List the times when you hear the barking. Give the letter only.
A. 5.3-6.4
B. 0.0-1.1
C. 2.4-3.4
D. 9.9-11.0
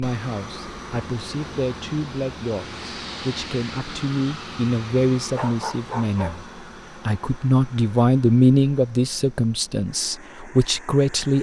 A.